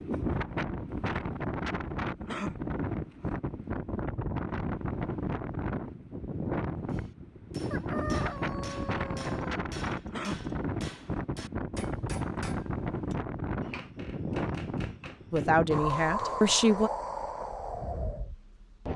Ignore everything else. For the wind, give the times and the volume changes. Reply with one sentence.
You can hear the wind from 0.0 to 18.9 s, at a steady volume.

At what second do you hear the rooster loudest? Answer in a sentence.
The volume of the rooster peaks at 8 seconds.